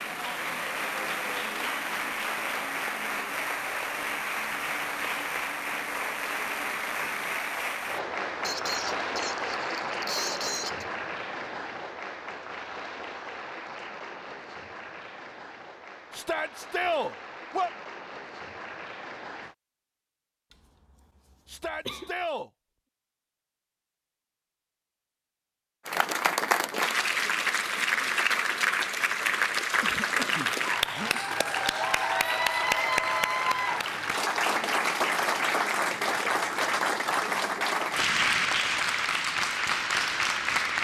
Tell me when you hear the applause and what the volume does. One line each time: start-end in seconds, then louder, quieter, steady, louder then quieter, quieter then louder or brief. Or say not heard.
0.0-19.6 quieter
25.9-40.7 steady.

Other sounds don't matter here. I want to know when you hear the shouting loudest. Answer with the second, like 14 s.
17 s.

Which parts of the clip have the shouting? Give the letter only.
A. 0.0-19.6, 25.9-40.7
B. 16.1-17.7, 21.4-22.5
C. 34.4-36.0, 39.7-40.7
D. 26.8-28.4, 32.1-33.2
B.